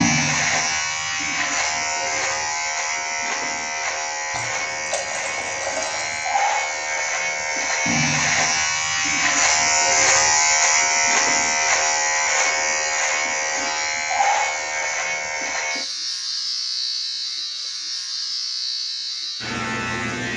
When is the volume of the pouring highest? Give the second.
6 s.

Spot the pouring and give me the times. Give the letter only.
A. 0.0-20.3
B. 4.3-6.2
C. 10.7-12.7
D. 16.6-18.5
B.